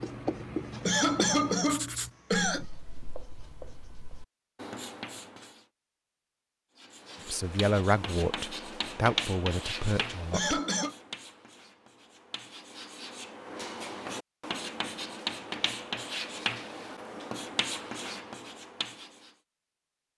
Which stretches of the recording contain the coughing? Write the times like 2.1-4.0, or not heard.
0.8-2.6, 10.3-10.9.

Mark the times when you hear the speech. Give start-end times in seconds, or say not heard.
7.2-10.6.